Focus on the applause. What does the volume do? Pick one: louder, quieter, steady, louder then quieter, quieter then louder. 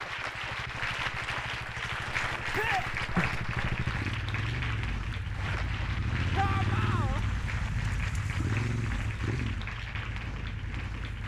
quieter.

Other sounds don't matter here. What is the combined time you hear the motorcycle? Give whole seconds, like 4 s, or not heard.
11 s.